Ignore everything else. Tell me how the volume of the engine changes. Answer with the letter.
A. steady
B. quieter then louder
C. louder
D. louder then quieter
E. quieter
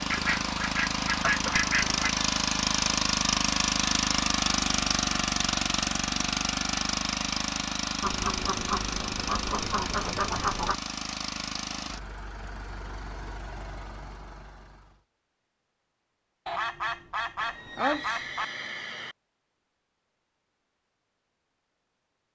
E.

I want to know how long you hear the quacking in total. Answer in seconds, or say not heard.
7 s.